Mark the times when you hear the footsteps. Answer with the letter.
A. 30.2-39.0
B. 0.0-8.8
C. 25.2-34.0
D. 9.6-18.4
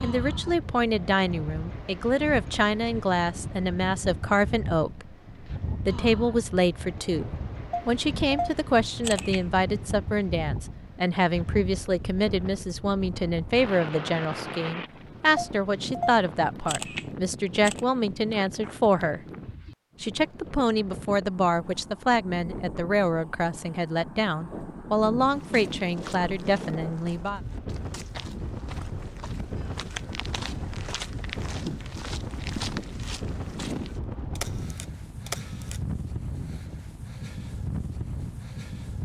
C.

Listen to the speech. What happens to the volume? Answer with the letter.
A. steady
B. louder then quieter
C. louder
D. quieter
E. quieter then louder
A.